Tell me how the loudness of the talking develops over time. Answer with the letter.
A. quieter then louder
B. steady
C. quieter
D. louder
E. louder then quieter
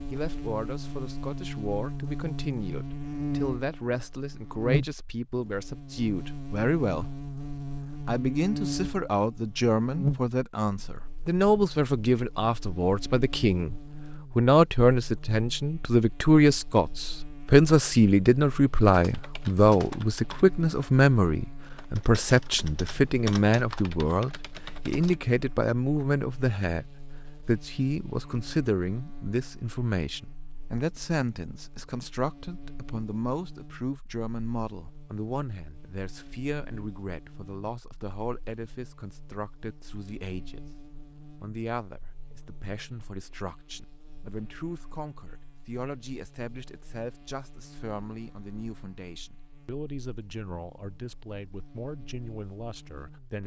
E.